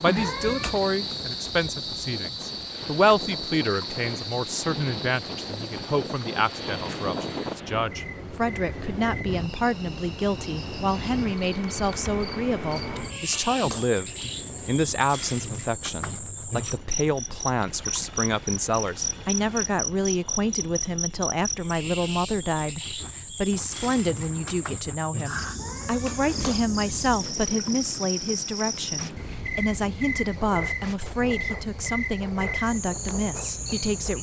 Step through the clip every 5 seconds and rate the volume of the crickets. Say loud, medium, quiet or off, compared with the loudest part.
loud, medium, loud, loud, loud, loud, loud.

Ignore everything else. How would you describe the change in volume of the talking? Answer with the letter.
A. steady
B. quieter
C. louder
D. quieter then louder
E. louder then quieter
A.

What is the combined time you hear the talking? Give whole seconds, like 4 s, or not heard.
34 s.